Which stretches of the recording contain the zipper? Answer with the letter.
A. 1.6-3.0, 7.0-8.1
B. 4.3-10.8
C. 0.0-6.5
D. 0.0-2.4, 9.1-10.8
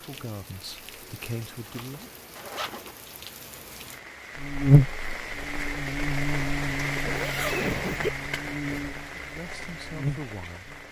A.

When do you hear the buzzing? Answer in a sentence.
The buzzing can be heard from 4.3 to 10.8 s.